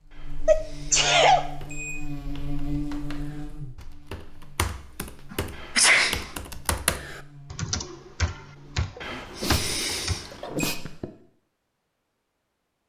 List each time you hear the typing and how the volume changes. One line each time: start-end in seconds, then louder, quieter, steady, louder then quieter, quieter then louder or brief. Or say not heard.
1.4-10.2 louder.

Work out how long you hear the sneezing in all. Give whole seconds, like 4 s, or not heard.
4 s.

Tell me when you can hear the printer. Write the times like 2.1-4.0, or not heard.
not heard.